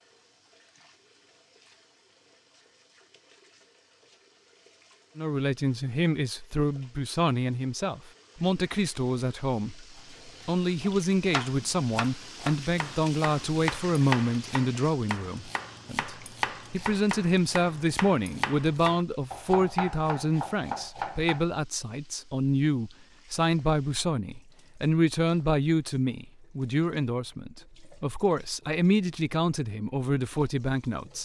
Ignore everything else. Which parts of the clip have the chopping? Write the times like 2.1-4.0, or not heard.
10.4-21.4.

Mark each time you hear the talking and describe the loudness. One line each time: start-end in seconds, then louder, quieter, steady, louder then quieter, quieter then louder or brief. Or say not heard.
5.2-31.2 steady.